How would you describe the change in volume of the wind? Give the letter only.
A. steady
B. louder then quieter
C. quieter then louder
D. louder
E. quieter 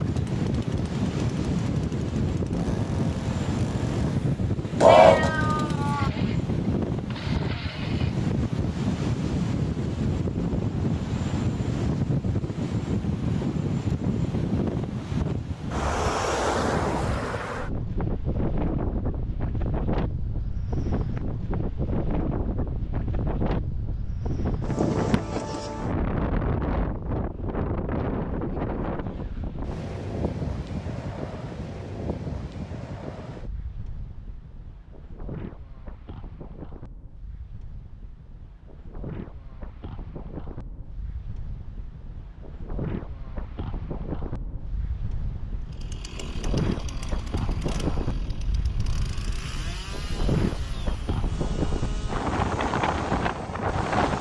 C.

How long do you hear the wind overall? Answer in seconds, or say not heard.
54 s.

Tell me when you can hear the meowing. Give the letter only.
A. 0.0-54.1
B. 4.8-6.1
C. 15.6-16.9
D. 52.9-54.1
B.